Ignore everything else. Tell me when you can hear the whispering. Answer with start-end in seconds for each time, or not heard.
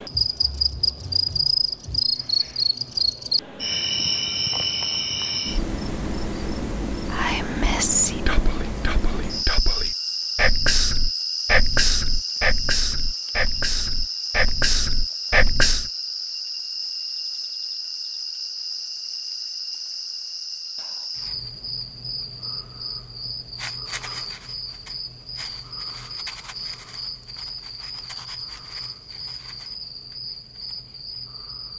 7.1-15.8.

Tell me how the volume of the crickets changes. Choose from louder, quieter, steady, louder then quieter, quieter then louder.
quieter.